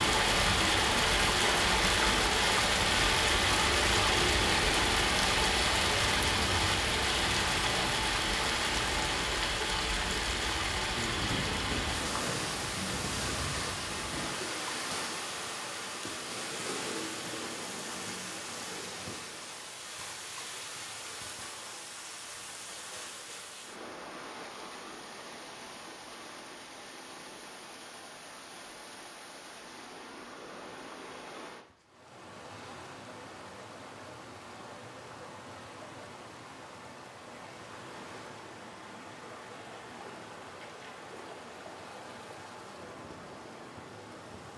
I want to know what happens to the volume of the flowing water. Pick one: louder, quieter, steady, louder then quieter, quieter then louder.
quieter.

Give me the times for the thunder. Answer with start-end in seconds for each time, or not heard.
10.9-14.3.